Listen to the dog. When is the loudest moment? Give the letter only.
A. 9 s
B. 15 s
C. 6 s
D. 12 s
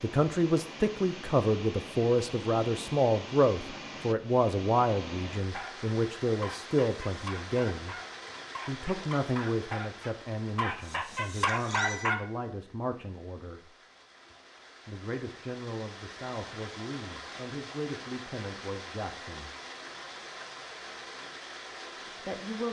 D.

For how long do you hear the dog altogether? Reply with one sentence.
You can hear the dog for 7 seconds altogether.